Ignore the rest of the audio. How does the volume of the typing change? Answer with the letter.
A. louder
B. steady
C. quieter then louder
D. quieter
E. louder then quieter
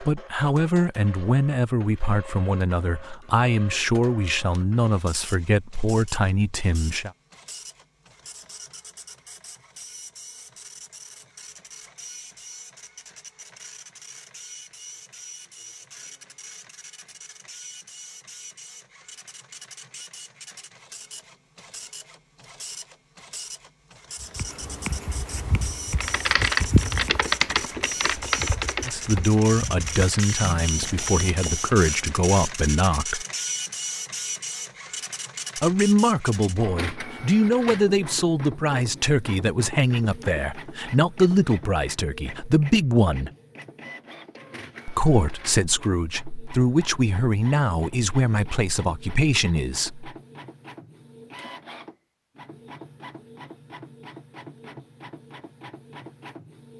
D.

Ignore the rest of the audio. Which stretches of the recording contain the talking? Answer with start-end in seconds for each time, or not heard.
0.0-7.1, 28.8-33.2, 35.5-43.3, 44.9-50.1.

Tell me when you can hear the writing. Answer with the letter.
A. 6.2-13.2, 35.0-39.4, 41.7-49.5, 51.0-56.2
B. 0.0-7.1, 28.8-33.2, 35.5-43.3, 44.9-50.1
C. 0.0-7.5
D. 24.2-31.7
D.